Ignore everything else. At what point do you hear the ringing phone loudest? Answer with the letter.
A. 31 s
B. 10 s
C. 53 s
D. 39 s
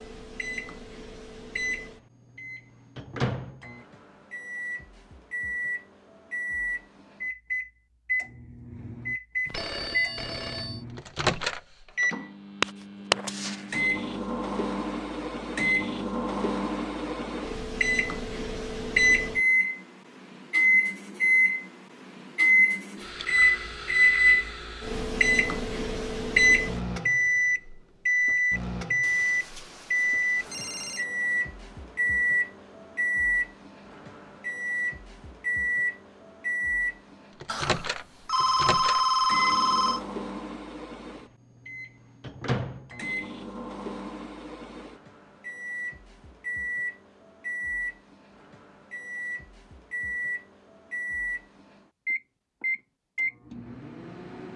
D.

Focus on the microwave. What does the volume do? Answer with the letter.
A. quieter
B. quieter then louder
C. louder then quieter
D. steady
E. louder
C.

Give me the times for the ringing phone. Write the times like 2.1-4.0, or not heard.
9.4-10.8, 29.0-31.1, 37.5-40.0.